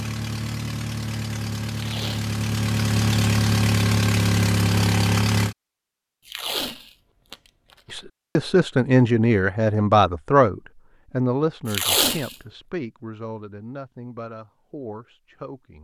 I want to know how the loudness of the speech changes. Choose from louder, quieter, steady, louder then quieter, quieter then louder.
quieter.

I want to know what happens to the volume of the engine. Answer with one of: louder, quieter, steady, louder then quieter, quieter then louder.
louder.